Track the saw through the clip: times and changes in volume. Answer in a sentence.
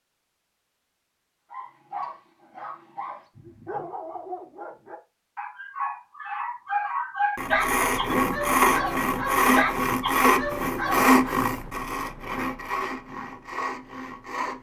You can hear the saw from 7.3 to 14.5 s, getting quieter.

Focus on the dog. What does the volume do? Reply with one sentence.
The loudness of the dog goes up.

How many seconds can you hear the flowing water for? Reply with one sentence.
The flowing water can't be heard in this clip.